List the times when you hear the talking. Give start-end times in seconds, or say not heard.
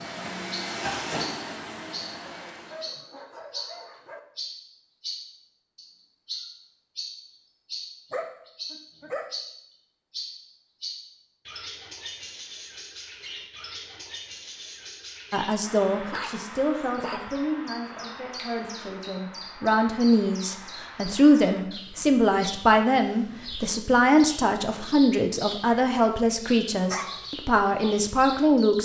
15.3-28.7.